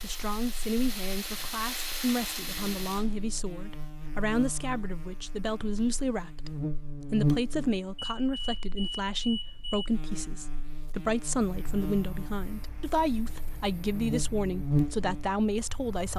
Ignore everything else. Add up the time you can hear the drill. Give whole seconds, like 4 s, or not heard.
3 s.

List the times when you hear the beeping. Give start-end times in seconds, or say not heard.
8.0-9.9.